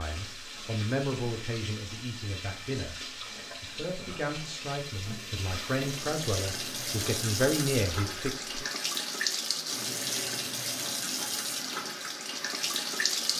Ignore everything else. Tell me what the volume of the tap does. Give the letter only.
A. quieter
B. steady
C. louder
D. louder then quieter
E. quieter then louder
C.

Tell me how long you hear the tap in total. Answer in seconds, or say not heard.
13 s.